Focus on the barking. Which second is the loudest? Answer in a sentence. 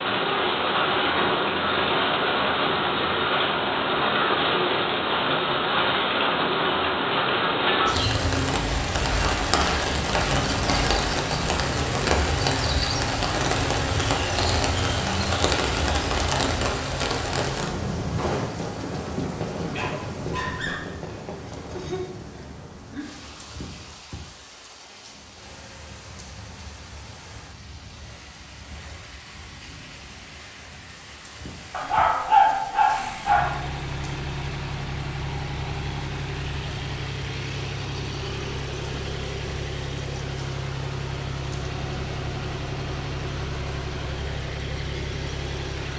The loudest moment of the barking is at 32 seconds.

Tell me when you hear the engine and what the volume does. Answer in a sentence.
The engine can be heard from 25.4 to 45.9 s, getting louder.